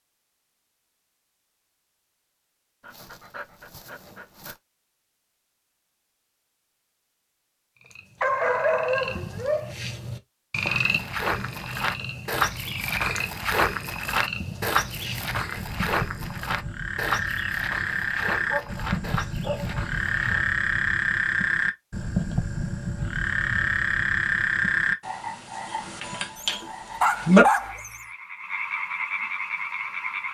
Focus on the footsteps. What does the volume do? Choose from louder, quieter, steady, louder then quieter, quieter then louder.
quieter.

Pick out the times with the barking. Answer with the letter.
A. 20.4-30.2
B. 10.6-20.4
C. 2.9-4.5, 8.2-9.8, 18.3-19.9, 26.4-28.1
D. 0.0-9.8
C.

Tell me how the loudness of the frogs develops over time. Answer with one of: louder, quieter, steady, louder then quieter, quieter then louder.
louder.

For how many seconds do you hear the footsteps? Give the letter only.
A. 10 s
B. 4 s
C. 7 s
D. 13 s
A.